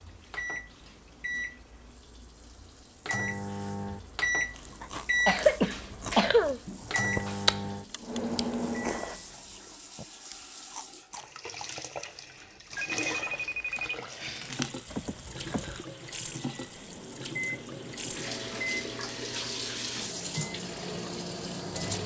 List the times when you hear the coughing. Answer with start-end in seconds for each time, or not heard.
4.8-6.6.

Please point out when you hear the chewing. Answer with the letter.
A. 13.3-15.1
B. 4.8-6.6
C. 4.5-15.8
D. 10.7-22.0
C.